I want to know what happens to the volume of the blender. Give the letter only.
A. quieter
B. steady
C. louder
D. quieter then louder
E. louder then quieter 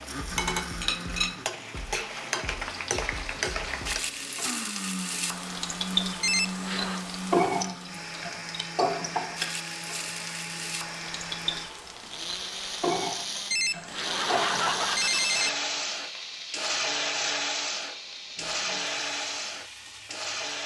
C.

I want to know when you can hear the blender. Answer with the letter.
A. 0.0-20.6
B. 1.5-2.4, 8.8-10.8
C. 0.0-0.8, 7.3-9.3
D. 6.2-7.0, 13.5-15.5
A.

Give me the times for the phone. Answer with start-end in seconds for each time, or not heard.
6.2-7.0, 13.5-15.5.